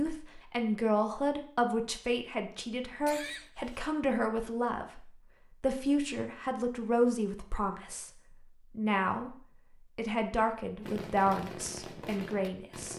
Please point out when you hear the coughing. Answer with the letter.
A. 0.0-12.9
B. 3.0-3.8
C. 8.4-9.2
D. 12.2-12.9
B.